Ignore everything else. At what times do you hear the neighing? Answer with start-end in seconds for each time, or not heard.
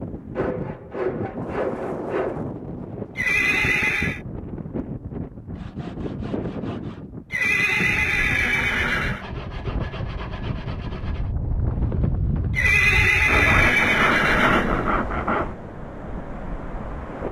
3.1-4.2, 7.3-9.2, 12.5-15.1.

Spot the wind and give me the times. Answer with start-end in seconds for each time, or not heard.
0.0-17.2.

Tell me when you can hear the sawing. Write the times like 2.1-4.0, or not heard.
0.3-2.4, 5.5-7.0, 9.0-11.3, 13.2-15.6.